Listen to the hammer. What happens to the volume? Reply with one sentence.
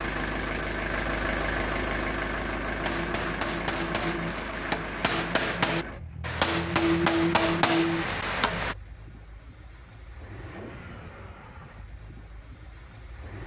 The loudness of the hammer goes up.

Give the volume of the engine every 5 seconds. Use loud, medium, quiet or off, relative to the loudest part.
loud, medium, quiet.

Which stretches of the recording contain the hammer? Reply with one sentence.
The hammer can be heard from 2.8 to 8.8 s.